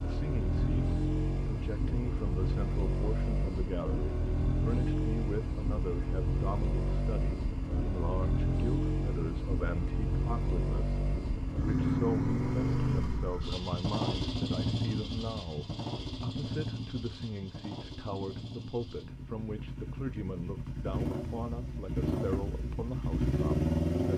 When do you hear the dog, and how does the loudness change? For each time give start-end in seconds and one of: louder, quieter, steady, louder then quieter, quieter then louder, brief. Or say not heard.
not heard.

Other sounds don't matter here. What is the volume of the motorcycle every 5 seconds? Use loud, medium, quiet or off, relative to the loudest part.
loud, loud, loud, medium, loud.